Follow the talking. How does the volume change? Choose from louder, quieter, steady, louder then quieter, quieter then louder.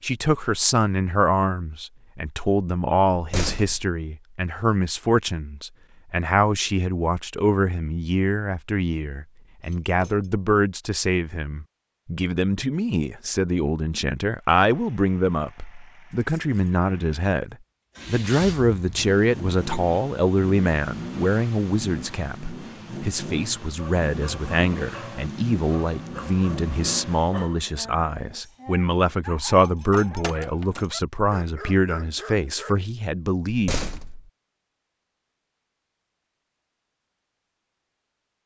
steady.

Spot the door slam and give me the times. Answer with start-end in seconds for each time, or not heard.
3.1-4.0, 33.5-34.3.